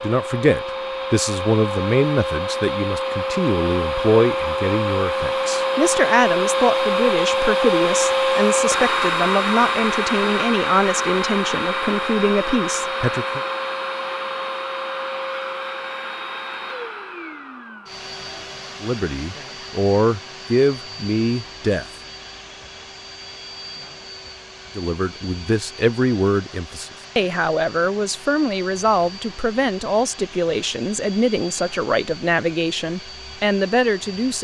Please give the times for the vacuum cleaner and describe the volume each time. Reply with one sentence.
You can hear the vacuum cleaner from 0.0 to 34.3 s, getting quieter.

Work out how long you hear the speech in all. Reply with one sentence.
You can hear the speech for 26 seconds altogether.